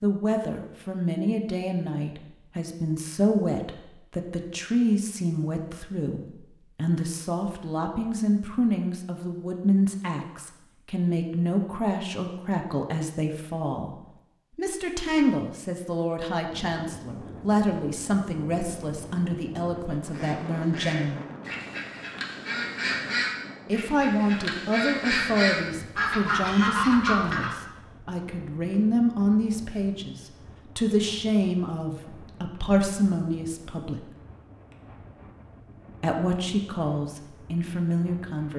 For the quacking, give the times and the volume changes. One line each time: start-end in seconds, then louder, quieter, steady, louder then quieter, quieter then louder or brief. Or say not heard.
20.1-27.6 louder.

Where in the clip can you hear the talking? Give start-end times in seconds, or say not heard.
0.0-13.9, 14.6-21.2, 23.6-34.1, 36.0-38.5.